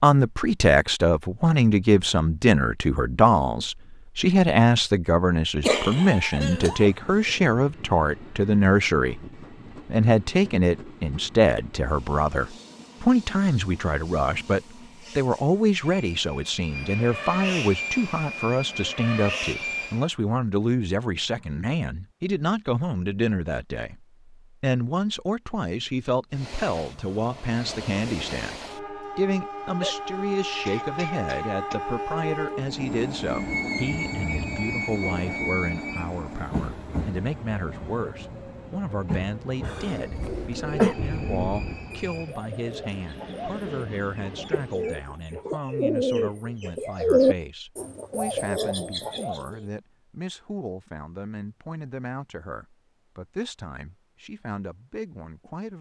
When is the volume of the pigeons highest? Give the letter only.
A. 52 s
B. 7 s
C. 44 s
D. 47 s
D.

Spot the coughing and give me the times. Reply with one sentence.
You can hear the coughing from 5.6 to 7.3 s, from 29.8 to 31.8 s and from 39.6 to 41.0 s.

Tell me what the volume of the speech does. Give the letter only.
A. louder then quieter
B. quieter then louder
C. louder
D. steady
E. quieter
E.